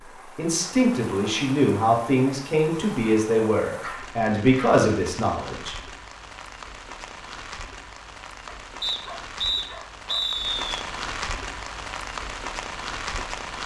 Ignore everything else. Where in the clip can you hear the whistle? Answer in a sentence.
You can hear the whistle from 8.8 to 10.7 s.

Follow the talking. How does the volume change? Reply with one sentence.
The volume of the talking stays about the same.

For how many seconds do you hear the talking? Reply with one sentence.
The talking can be heard for 6 seconds in total.